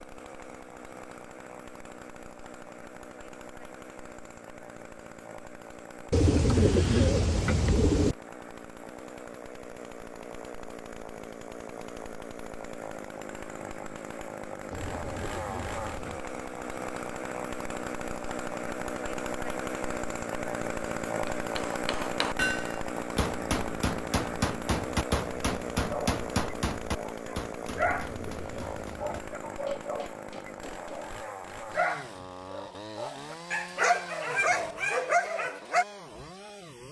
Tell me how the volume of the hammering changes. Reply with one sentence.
The loudness of the hammering goes down.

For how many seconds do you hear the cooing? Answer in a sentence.
You can hear the cooing for 5 seconds altogether.